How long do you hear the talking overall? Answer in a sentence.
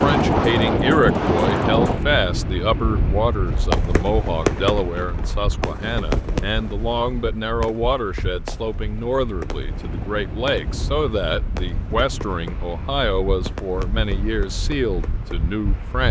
You can hear the talking for 16 seconds altogether.